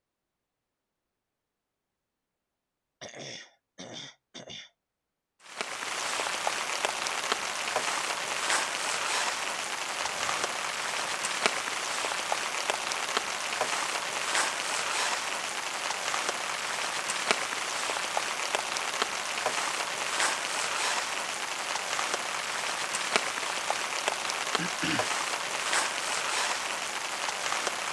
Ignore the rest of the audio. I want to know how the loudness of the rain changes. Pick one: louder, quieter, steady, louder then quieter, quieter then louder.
steady.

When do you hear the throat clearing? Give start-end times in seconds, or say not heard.
3.0-4.7, 9.9-11.2, 24.6-25.2.